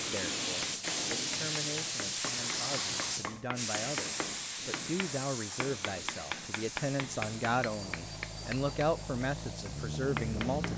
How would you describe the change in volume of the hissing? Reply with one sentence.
The volume of the hissing goes down.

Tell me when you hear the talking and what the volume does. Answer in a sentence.
You can hear the talking from 0.0 to 10.7 s, getting louder.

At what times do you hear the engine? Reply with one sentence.
The engine can be heard from 7.1 to 10.7 s.